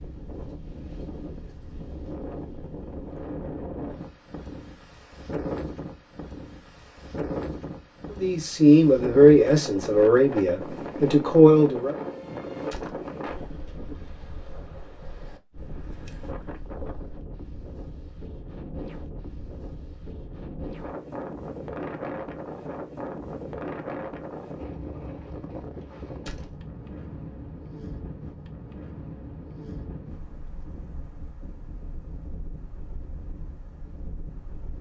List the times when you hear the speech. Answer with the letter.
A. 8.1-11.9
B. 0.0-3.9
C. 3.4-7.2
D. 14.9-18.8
A.